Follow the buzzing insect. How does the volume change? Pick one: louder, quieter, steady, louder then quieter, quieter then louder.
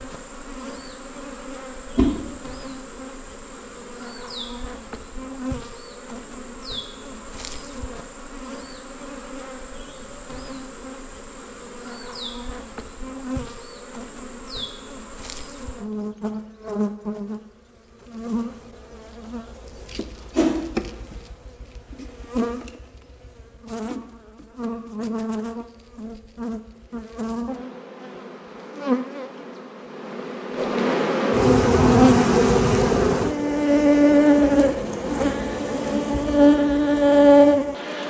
louder.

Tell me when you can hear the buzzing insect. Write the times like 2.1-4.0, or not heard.
0.0-38.0.